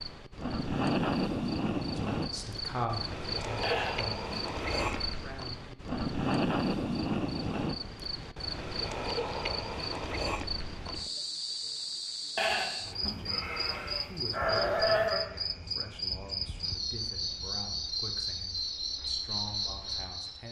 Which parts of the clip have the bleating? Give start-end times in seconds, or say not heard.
3.6-5.1, 12.3-15.3.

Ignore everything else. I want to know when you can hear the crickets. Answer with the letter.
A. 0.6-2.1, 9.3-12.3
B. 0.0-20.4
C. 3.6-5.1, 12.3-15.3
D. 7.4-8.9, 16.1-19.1
B.